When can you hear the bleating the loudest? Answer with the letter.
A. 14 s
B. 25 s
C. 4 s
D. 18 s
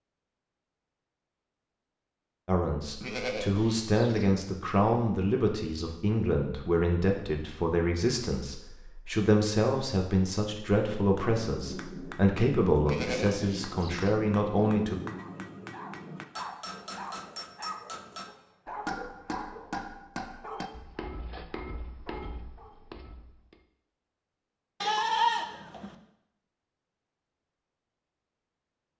B.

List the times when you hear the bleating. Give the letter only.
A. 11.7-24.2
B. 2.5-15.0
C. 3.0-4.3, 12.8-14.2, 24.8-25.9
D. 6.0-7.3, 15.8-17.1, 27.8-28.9
C.